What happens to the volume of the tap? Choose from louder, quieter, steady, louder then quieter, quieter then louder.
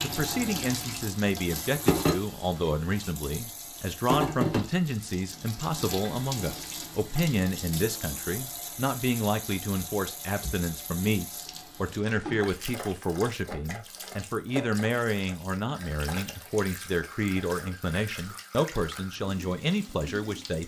quieter.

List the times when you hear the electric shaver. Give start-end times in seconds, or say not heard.
not heard.